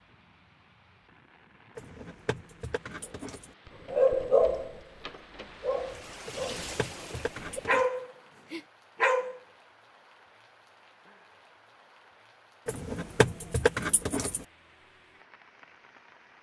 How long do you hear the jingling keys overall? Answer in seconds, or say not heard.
5 s.